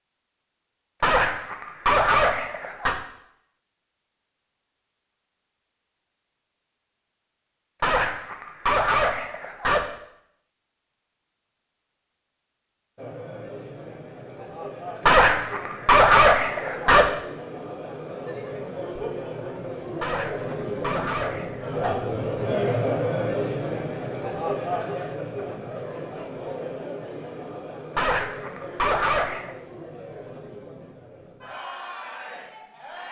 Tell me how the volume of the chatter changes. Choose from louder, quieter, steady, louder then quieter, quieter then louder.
louder then quieter.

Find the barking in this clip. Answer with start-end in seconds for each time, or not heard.
1.0-3.0, 7.8-9.8, 15.1-17.1, 20.0-21.9, 27.9-29.6.